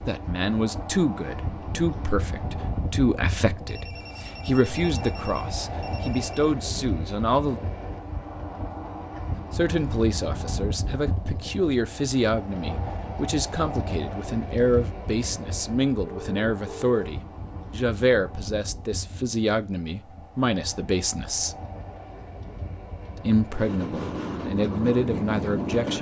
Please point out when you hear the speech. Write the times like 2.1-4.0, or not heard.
0.1-7.6, 9.5-21.6, 23.2-25.9.